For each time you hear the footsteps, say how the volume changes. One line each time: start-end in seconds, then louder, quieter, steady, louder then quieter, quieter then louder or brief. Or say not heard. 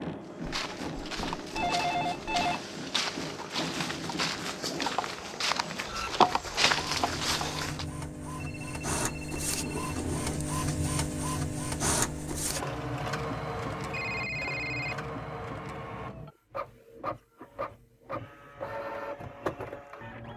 0.2-7.8 louder.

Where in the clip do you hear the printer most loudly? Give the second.
12 s.